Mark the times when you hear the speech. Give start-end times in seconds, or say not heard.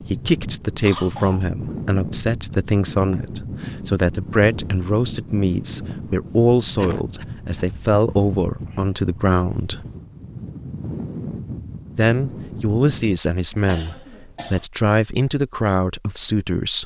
0.0-9.8, 11.9-16.8.